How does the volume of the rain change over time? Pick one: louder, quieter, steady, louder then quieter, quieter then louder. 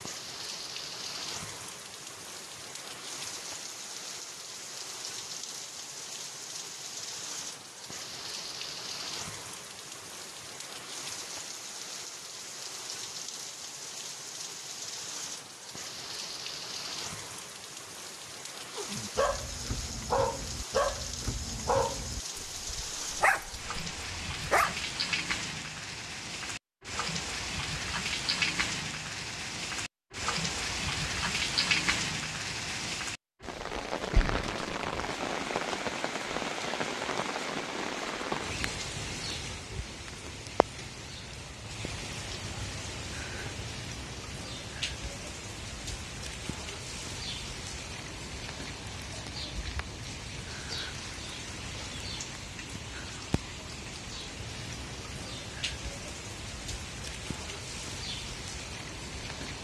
louder then quieter.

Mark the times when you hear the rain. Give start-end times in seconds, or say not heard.
0.0-59.5.